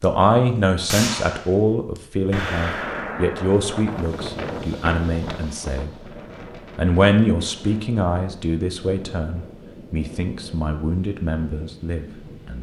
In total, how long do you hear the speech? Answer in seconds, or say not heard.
12 s.